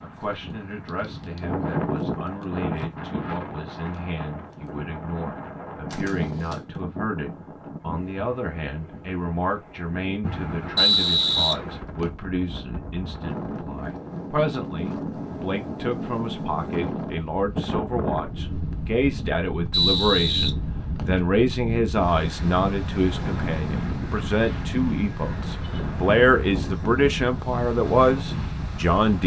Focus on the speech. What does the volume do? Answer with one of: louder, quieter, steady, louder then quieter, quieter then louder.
louder.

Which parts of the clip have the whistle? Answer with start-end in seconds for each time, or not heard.
10.8-12.1, 19.7-21.2.